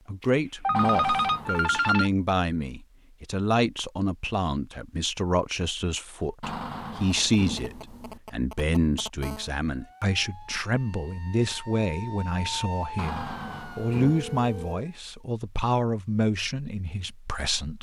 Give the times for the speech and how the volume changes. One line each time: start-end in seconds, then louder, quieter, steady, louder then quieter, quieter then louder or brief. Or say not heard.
0.1-17.7 steady.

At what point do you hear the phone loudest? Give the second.
1 s.